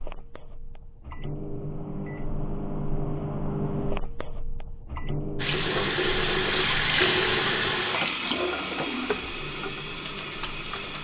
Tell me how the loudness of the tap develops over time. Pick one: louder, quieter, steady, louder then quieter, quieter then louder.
quieter.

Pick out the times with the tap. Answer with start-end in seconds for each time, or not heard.
5.3-10.9.